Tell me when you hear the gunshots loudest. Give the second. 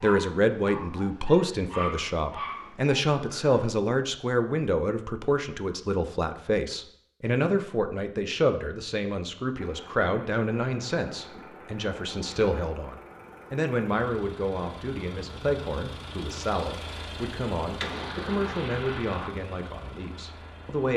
18 s.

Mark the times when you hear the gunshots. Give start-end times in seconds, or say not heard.
17.8-19.3.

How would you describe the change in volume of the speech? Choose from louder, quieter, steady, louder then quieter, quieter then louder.
quieter.